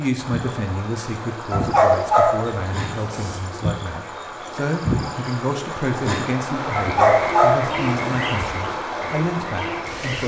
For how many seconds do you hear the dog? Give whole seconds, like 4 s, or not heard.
4 s.